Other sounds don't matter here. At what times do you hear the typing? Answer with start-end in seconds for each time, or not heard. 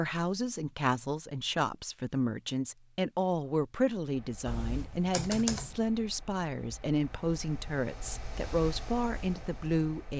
4.5-5.8.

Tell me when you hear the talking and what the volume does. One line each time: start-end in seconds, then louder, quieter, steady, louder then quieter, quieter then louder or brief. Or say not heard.
0.0-10.1 steady.